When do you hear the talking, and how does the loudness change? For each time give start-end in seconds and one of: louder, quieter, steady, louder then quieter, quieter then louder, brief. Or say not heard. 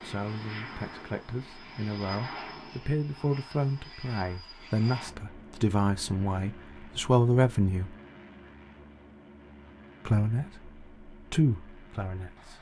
0.0-8.0 louder
10.1-12.5 brief.